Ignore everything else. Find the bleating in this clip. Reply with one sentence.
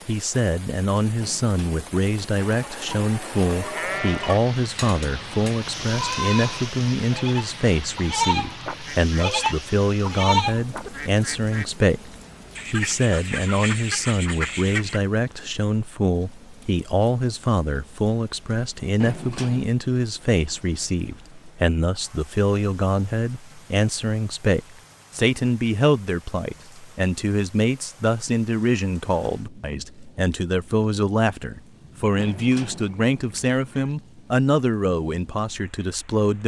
You can hear the bleating from 2.4 to 10.8 s.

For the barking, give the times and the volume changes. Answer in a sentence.
You can't hear the barking here.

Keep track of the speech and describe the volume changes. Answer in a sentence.
The loudness of the speech stays about the same.